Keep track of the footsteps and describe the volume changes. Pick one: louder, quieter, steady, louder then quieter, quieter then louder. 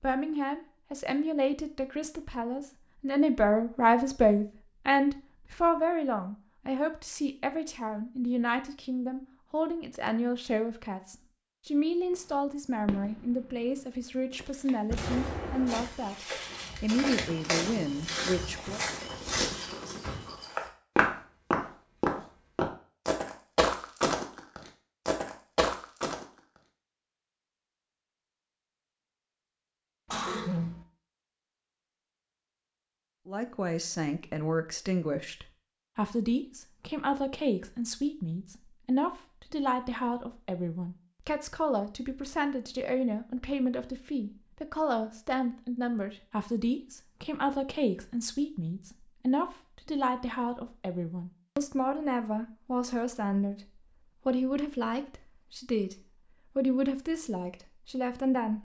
louder.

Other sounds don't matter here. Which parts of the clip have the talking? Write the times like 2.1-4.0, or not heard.
0.0-18.8, 33.2-58.5.